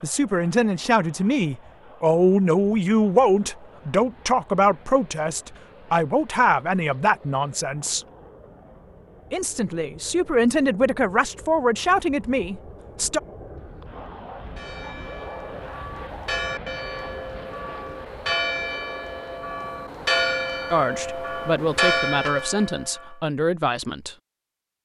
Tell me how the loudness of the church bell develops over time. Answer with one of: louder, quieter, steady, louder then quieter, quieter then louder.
louder.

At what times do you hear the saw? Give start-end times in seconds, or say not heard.
not heard.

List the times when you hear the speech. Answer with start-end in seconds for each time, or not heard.
0.0-8.1, 9.3-13.2, 20.7-24.1.